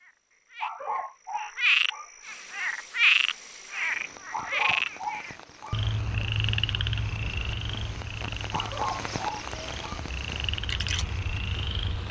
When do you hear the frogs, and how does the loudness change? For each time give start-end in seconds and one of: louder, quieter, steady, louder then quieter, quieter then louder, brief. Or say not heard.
0.0-12.0 quieter.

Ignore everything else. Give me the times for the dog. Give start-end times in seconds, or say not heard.
0.6-2.1, 4.3-6.3, 8.5-10.0.